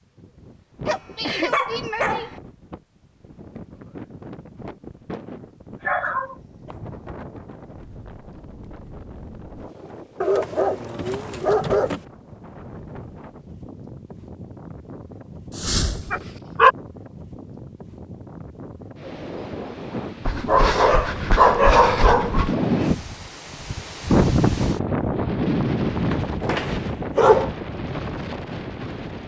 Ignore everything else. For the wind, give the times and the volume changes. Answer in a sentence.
The wind can be heard from 0.0 to 29.2 s, getting louder.